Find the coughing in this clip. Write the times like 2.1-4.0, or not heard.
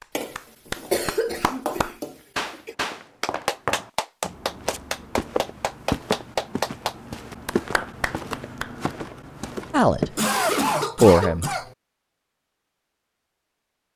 0.1-2.8, 10.2-11.8.